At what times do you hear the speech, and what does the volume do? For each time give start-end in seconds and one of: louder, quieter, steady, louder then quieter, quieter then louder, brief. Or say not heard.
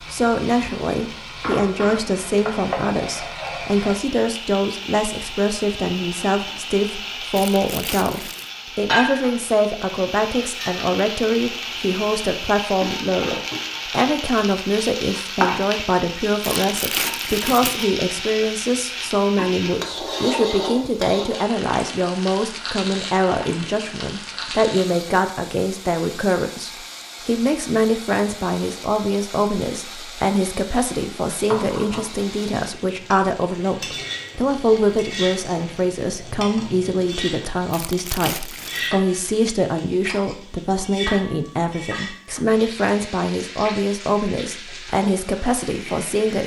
0.1-46.4 steady.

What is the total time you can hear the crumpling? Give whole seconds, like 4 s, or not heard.
4 s.